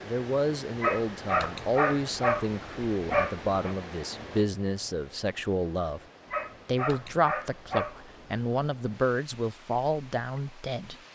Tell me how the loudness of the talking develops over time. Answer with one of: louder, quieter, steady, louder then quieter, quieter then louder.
steady.